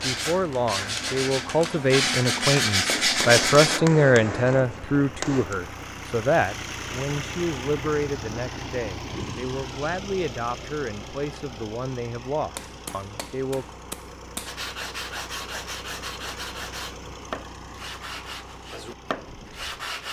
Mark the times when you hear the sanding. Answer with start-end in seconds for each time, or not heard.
0.0-3.8, 14.4-20.0.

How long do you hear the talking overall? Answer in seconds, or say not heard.
14 s.